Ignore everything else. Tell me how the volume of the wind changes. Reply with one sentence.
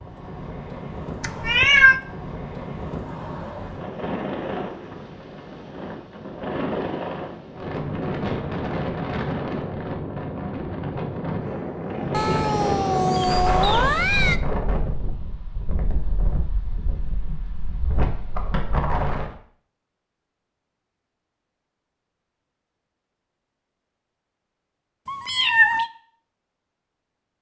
The volume of the wind goes up, then down.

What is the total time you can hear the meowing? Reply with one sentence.
You can hear the meowing for 4 seconds altogether.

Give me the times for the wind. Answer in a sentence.
You can hear the wind from 0.0 to 19.4 s.